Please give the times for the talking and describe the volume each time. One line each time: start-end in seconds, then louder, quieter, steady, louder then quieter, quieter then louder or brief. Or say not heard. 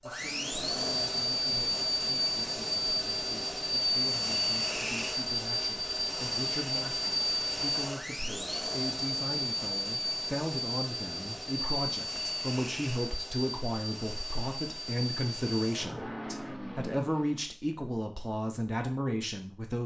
0.0-19.8 louder.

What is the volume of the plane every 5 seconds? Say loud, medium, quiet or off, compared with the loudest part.
loud, loud, medium, medium.